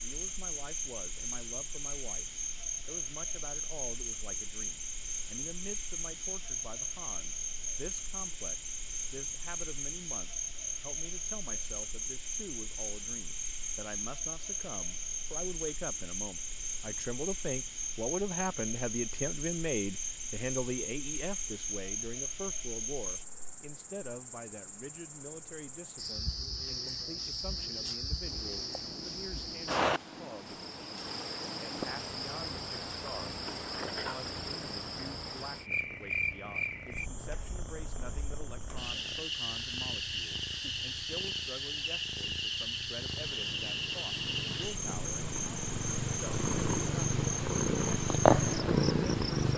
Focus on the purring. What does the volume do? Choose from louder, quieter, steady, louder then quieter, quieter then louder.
louder.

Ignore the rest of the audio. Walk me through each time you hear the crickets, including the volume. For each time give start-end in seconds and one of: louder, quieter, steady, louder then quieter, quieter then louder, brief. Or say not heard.
0.0-49.5 steady.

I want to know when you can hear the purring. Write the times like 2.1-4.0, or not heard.
28.2-49.5.